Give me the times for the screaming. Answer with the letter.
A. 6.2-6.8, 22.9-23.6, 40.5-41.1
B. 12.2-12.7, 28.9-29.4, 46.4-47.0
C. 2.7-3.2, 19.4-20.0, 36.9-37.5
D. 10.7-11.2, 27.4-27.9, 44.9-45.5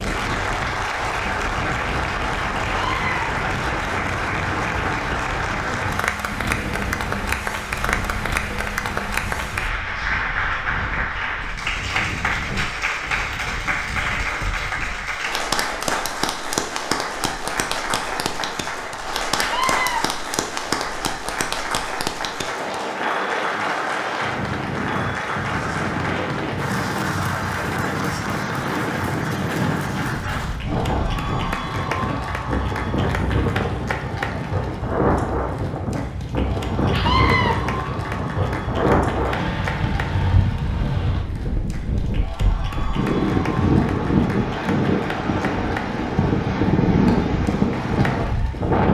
C.